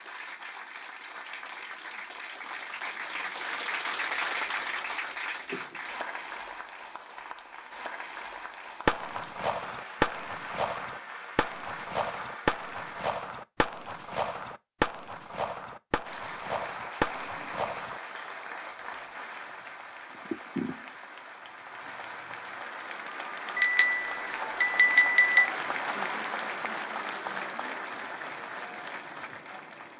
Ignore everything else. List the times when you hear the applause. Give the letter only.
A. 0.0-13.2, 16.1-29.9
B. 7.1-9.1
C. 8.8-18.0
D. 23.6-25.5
A.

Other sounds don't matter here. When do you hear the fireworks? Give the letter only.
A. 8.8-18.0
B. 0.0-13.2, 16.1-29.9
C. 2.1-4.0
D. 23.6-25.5
A.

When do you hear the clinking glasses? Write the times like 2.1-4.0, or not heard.
23.6-25.5.